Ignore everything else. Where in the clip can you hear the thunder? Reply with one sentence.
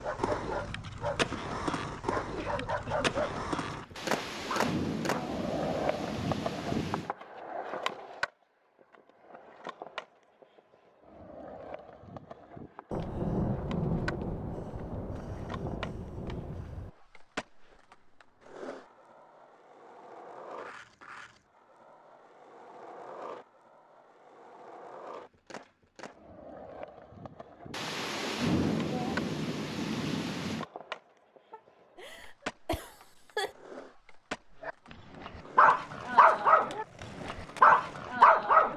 You can hear the thunder from 4.0 to 7.1 s, from 12.9 to 16.9 s and from 27.7 to 30.6 s.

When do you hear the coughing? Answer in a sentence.
You can hear the coughing from 2.4 to 3.1 s and from 31.5 to 33.5 s.